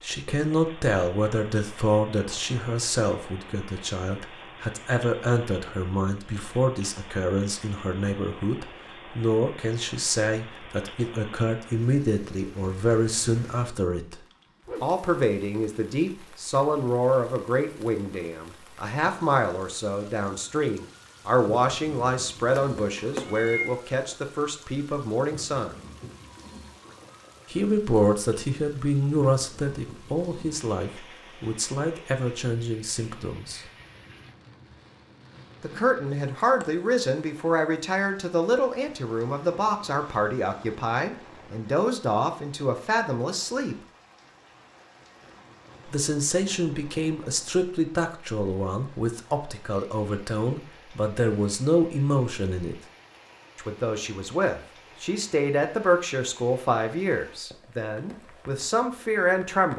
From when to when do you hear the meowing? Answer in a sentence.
You can hear the meowing from 22.6 to 23.8 s.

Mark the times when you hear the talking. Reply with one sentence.
The talking can be heard from 0.0 to 25.8 s, from 27.5 to 33.6 s, from 35.6 to 43.8 s, from 45.9 to 52.8 s and from 53.5 to 59.7 s.